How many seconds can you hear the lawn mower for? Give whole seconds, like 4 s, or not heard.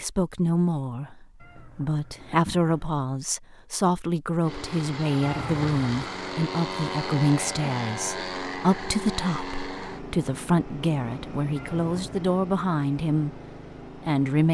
10 s.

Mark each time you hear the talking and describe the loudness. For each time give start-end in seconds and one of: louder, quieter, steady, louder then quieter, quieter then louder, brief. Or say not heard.
0.0-14.4 steady.